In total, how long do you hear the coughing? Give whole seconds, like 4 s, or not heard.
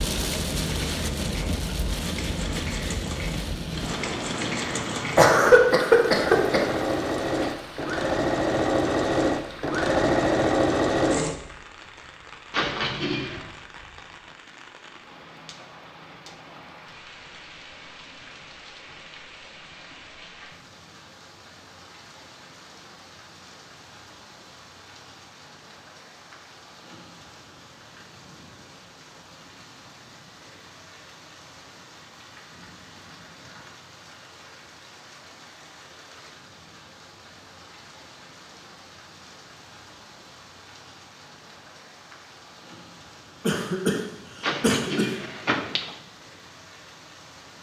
3 s.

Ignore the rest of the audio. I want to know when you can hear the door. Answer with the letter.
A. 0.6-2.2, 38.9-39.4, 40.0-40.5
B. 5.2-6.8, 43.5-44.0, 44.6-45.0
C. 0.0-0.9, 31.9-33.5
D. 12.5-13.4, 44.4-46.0
D.